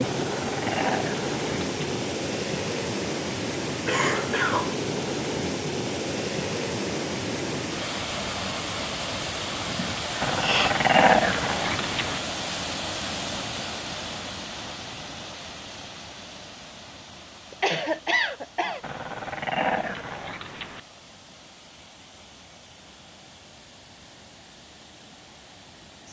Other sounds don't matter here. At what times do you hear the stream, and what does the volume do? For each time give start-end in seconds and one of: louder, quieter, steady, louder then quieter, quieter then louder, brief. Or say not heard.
0.0-26.0 quieter.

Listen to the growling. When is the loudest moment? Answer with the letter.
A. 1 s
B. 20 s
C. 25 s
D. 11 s
D.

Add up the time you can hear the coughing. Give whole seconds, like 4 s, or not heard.
3 s.